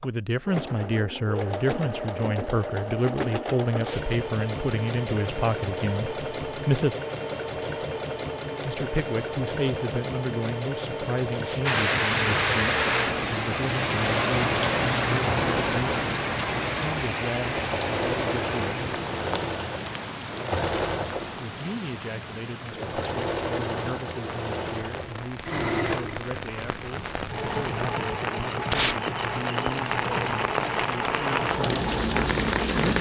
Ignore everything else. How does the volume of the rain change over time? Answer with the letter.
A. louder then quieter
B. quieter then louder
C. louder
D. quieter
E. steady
B.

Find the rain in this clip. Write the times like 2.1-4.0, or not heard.
11.7-32.9.